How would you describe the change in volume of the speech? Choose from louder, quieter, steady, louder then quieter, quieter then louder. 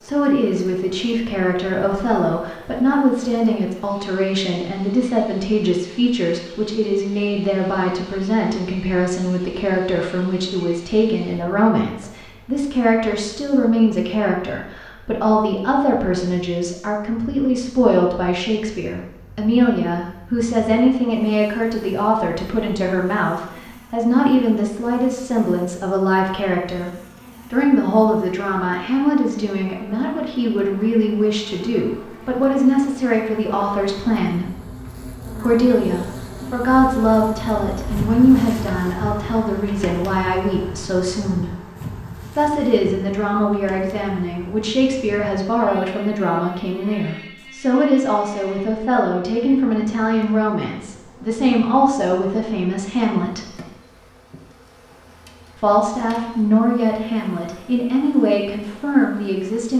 steady.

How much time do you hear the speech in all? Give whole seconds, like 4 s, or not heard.
55 s.